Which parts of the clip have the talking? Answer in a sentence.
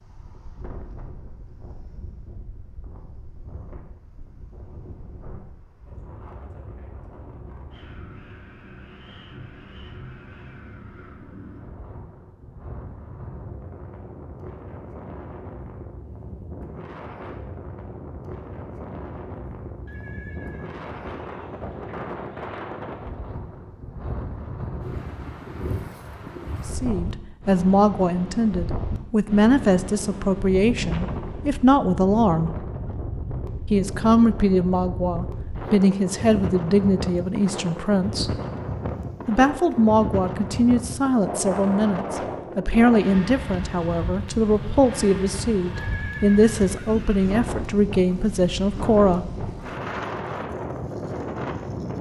The talking can be heard from 26.6 to 32.5 s, from 33.7 to 38.4 s and from 39.2 to 49.2 s.